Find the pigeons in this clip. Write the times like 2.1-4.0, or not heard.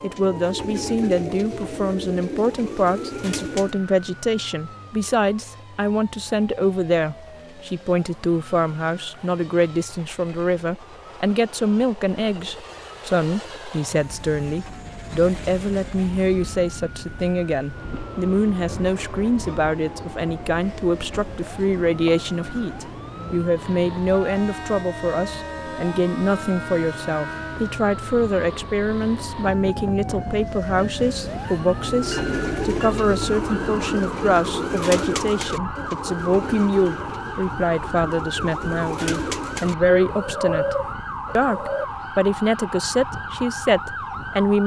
0.0-3.8, 31.8-41.9.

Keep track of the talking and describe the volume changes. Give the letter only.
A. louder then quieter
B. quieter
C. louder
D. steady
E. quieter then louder
D.